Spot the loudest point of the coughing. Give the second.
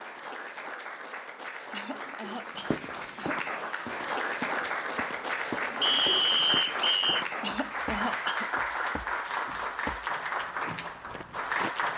8 s.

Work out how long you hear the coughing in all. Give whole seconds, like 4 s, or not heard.
3 s.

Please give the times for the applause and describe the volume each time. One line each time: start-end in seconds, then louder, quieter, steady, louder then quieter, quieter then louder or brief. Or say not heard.
0.0-11.9 louder.